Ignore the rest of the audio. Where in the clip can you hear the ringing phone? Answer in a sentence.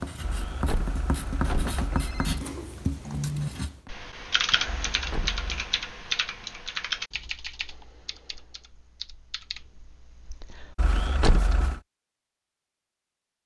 The ringing phone can be heard from 0.2 to 2.5 s, from 4.7 to 5.8 s and from 10.8 to 11.8 s.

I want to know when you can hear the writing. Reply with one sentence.
You can hear the writing from 0.0 to 3.9 s.